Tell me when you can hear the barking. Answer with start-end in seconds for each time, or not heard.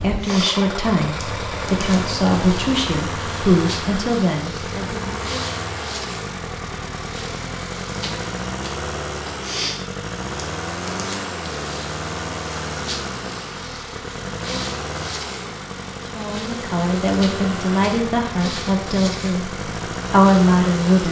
not heard.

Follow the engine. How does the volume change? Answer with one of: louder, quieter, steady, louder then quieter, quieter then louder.
steady.